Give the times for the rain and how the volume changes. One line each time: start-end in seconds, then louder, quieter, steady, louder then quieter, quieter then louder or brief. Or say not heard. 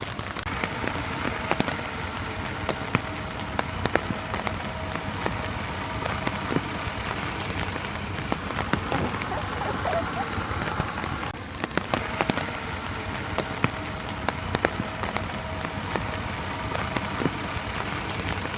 0.0-18.5 steady.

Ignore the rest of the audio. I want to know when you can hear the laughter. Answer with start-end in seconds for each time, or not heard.
8.9-10.2.